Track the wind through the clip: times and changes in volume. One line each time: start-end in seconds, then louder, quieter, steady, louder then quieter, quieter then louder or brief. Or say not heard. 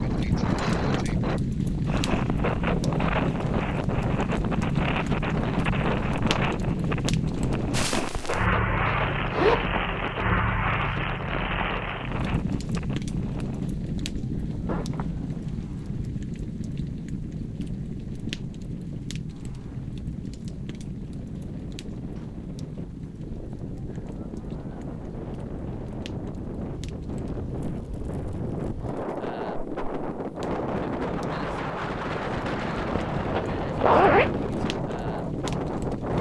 0.0-36.1 quieter then louder.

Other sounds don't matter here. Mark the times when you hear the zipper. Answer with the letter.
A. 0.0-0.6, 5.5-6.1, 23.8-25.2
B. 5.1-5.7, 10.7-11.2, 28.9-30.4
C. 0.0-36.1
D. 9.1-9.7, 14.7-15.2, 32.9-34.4
D.